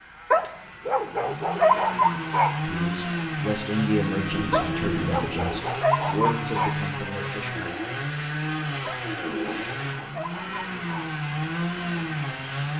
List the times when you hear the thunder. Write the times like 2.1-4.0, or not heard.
4.2-5.6.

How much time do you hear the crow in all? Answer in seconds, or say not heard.
not heard.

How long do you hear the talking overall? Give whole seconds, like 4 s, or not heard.
5 s.